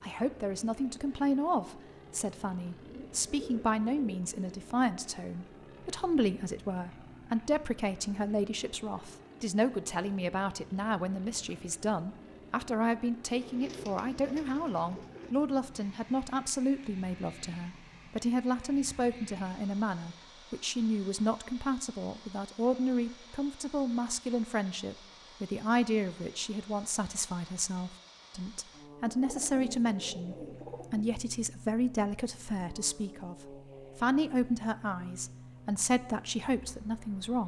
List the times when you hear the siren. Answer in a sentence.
You can't hear the siren here.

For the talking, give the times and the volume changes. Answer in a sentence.
You can hear the talking from 0.0 to 37.4 s, at a steady volume.